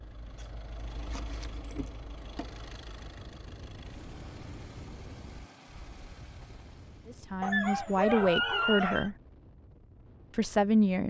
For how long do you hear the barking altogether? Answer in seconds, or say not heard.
3 s.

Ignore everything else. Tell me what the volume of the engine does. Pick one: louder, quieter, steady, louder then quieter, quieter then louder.
quieter.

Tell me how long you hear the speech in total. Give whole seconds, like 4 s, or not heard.
3 s.